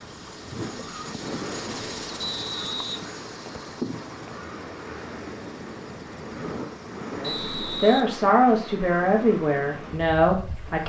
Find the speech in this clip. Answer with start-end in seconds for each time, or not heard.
7.2-10.8.